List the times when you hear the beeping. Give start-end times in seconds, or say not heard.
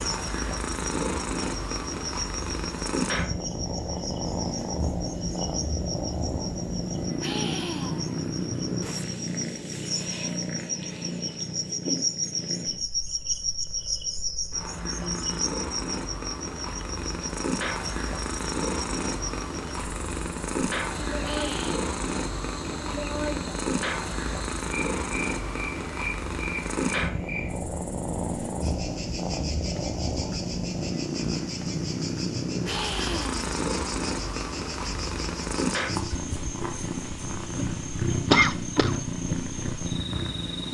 not heard.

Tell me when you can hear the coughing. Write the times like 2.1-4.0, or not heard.
38.1-39.0.